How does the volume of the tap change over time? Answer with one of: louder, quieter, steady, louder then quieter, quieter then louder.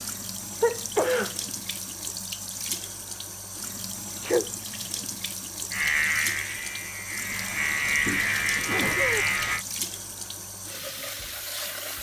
steady.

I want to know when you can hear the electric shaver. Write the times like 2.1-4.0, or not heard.
5.7-9.7.